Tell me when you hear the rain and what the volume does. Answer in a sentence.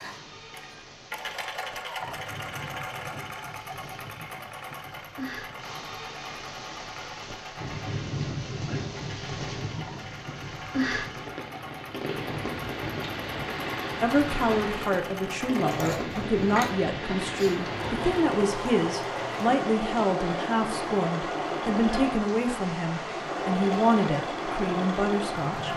You can hear the rain from 0.0 to 25.7 s, getting louder.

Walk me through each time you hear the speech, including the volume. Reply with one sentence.
You can hear the speech from 14.0 to 25.7 s, at a steady volume.